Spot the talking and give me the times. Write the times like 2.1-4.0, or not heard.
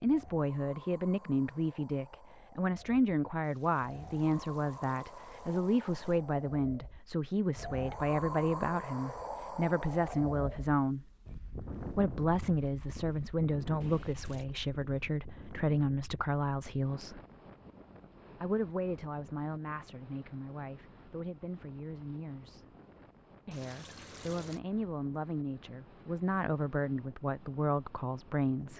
0.0-11.1, 11.9-17.2, 18.4-22.6, 23.4-28.7.